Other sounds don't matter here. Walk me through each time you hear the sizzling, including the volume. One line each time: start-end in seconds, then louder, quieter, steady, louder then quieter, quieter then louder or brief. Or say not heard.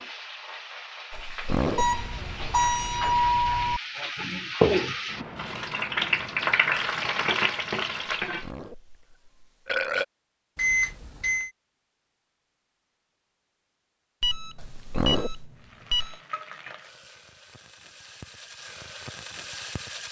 0.0-8.5 louder
15.6-20.0 quieter then louder.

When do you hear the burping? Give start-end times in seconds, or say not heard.
1.1-2.0, 8.2-10.1, 14.6-15.5.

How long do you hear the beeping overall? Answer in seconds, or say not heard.
5 s.